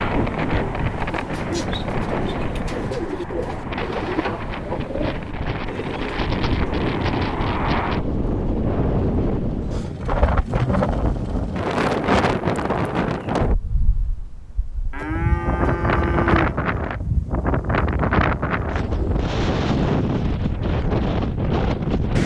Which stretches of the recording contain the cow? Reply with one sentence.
You can hear the cow from 14.9 to 16.6 s.